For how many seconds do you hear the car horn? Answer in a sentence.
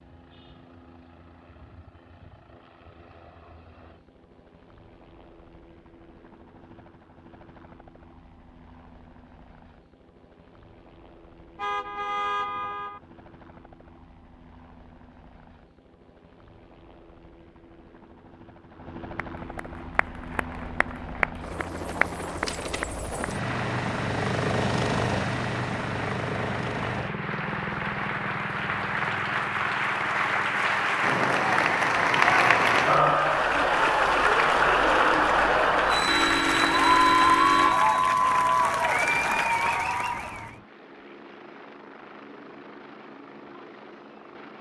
The car horn can be heard for 3 seconds in total.